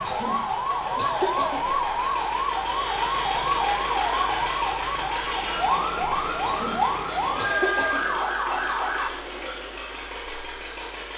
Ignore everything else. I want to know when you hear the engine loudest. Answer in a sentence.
The volume of the engine peaks at 4 seconds.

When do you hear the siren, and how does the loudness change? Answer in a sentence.
The siren can be heard from 0.0 to 9.1 s, at a steady volume.